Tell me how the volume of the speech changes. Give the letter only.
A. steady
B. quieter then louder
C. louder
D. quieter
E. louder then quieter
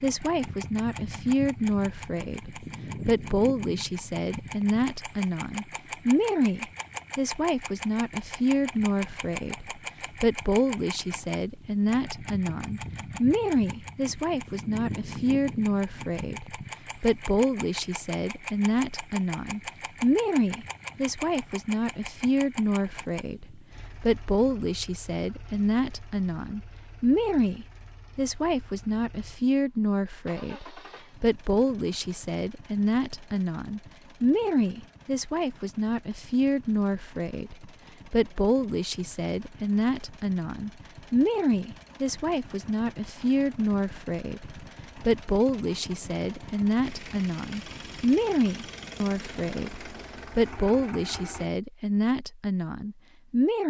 A.